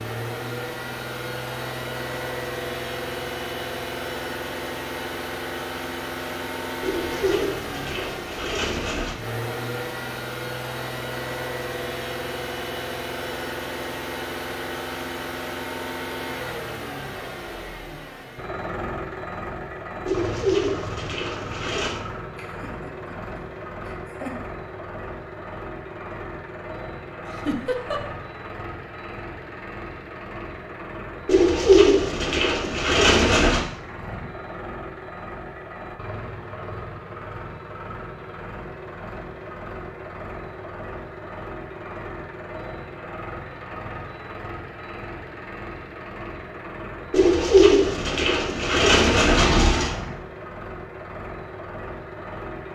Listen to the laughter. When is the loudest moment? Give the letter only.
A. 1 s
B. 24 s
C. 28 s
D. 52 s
C.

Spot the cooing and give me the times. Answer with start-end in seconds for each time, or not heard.
6.8-9.2, 20.1-22.0, 31.2-33.6, 47.1-50.0.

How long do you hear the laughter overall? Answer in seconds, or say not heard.
3 s.